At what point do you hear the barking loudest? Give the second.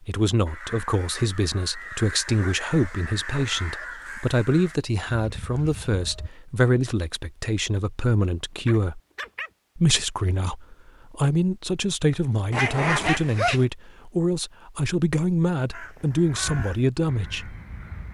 13 s.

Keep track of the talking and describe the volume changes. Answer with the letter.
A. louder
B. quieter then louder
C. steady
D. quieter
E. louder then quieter
C.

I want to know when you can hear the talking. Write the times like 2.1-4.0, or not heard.
0.0-9.0, 9.8-17.6.